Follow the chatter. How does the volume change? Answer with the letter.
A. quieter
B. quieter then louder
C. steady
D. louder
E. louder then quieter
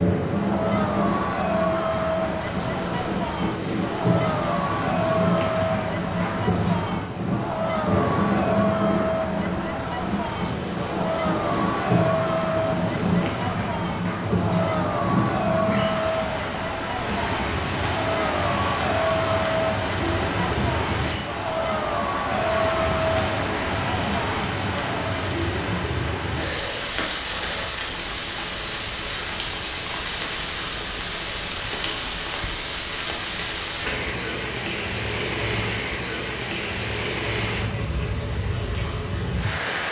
C.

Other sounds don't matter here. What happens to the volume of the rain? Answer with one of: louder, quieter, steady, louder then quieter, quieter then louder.
steady.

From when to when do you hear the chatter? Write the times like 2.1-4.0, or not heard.
0.1-25.2.